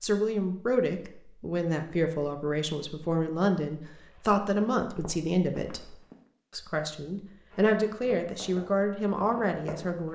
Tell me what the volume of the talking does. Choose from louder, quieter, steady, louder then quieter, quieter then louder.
steady.